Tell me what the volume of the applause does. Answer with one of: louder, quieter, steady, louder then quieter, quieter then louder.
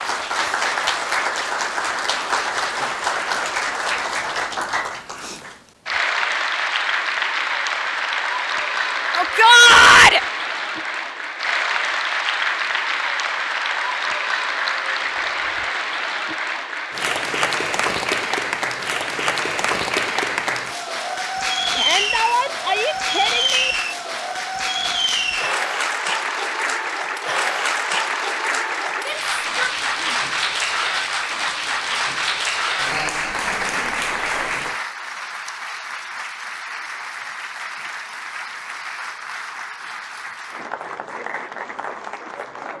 quieter.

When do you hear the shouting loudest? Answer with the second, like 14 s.
10 s.